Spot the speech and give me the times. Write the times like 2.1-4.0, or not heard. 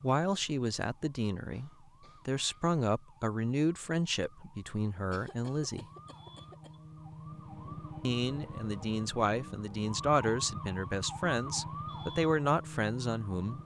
0.0-5.8, 8.1-13.6.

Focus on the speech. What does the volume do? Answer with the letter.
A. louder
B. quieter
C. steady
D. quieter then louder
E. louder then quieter
C.